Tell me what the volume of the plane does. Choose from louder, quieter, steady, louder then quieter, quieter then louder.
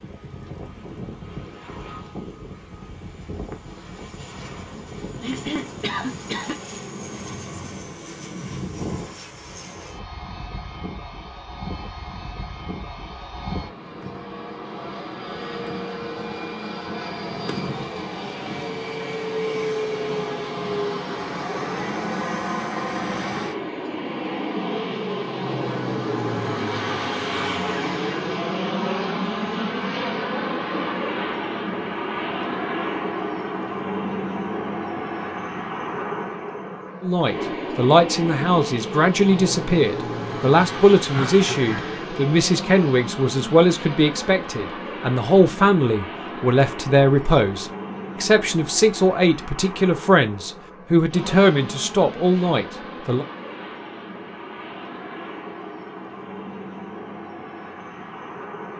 louder then quieter.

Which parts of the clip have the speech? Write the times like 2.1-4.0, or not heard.
37.0-53.2.